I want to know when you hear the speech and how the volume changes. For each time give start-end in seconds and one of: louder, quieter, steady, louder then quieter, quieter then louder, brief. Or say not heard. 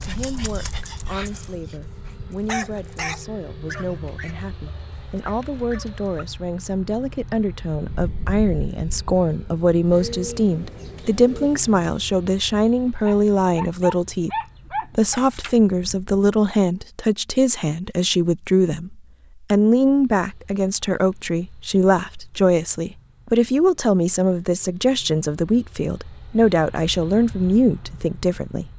0.0-14.3 louder
14.9-28.7 steady.